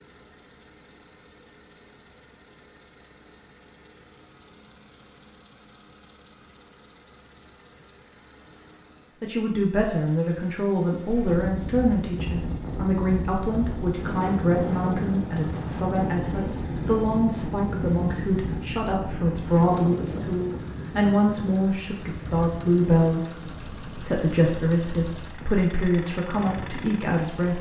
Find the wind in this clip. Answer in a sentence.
You can hear the wind from 10.9 to 27.5 s.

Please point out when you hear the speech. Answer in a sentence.
You can hear the speech from 9.2 to 27.5 s.